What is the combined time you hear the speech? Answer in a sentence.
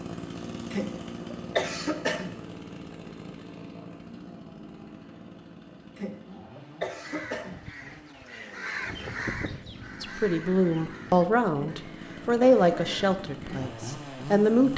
You can hear the speech for 5 seconds altogether.